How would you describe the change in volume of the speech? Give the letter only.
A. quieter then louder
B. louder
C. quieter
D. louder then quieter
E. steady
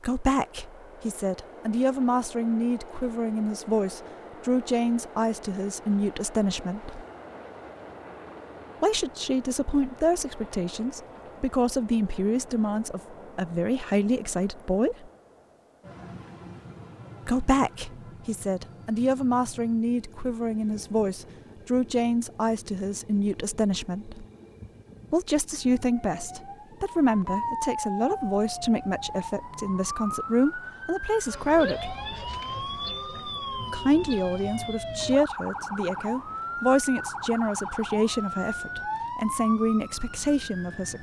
E.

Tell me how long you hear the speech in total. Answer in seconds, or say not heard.
34 s.